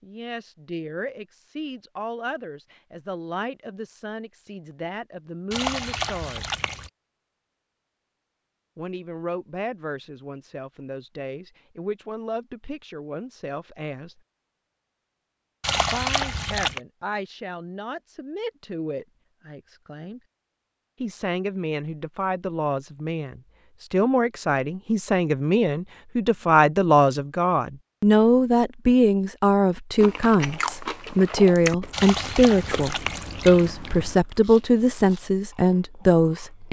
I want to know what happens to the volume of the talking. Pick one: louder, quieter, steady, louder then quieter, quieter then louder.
louder.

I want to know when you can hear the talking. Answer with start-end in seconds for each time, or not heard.
0.0-6.5, 8.8-14.2, 15.8-20.2, 21.0-36.6.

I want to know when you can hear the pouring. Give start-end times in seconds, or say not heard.
5.5-6.9, 15.6-16.8, 31.9-33.7.